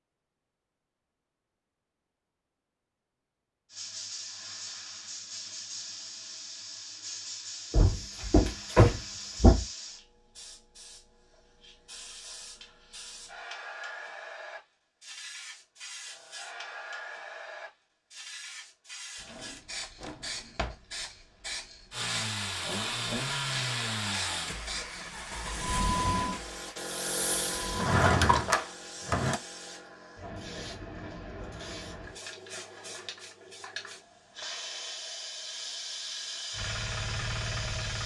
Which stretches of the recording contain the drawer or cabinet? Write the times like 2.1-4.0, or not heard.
7.7-9.7, 19.2-20.8, 27.7-29.4.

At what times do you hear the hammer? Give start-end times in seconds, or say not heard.
not heard.